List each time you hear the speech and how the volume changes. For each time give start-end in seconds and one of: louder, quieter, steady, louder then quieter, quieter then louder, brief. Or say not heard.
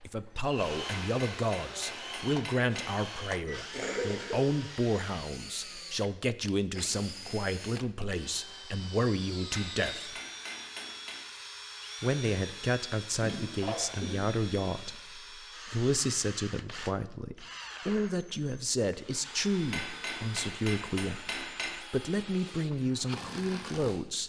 0.0-10.2 steady
12.0-24.2 steady.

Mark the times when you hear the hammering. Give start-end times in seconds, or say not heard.
1.0-2.9, 9.5-11.2, 19.7-21.7.